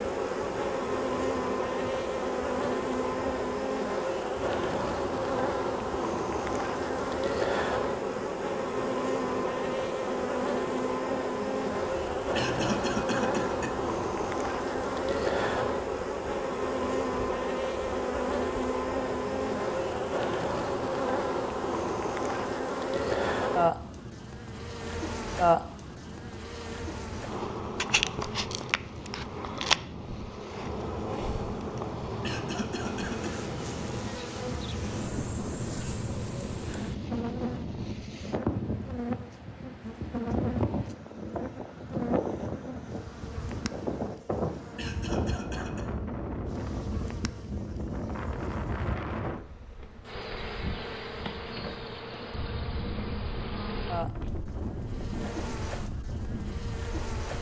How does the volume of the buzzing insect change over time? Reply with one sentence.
The volume of the buzzing insect goes down.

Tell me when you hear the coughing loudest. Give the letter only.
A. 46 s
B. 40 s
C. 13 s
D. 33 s
C.